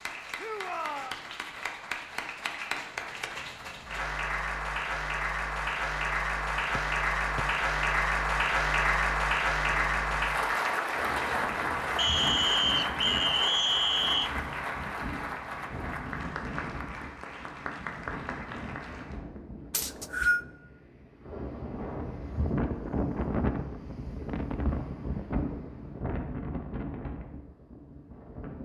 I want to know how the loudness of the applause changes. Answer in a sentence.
The volume of the applause goes up, then down.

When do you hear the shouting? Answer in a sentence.
You can hear the shouting from 0.3 to 1.1 s.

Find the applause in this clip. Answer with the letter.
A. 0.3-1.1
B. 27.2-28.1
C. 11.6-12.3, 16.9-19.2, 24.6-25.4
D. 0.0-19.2
D.